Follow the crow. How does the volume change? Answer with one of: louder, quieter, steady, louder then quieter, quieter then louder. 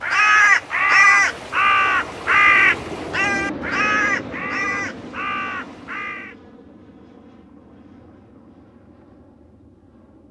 quieter.